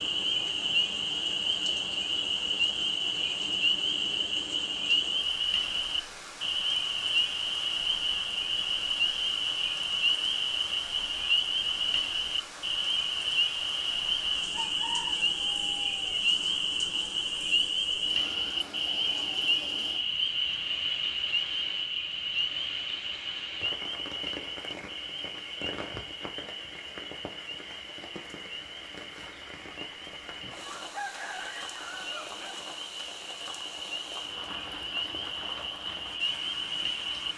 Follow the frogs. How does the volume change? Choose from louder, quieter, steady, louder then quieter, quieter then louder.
quieter.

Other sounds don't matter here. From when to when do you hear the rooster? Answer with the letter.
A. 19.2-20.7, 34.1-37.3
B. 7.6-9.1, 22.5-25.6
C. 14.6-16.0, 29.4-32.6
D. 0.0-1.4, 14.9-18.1
C.